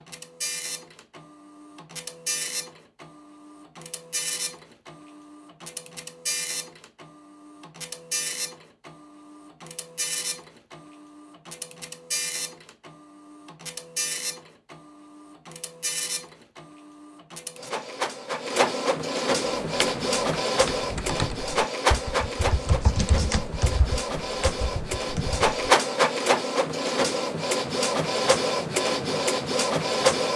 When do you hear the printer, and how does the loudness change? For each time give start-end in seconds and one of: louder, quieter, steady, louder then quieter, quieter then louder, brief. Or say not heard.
0.0-30.3 louder.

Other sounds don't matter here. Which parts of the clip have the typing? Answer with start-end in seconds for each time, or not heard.
19.6-25.7.